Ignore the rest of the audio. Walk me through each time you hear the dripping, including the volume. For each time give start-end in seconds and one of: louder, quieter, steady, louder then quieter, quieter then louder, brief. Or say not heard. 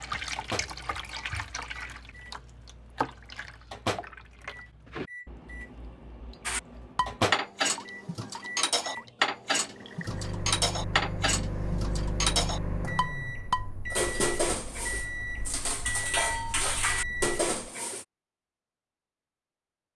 0.0-10.2 quieter.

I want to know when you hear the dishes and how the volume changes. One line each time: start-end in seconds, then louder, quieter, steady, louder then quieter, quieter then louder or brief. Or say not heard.
6.5-18.1 steady.